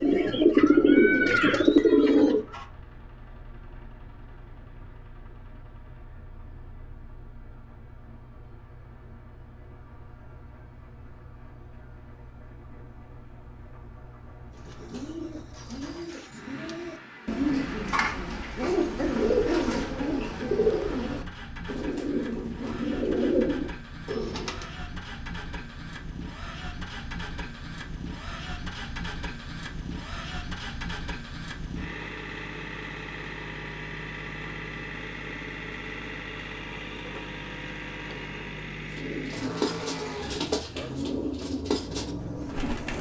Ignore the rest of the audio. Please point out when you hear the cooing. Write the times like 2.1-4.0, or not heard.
0.0-2.6, 14.7-24.6, 38.9-42.9.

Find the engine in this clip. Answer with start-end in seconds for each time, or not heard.
0.0-42.9.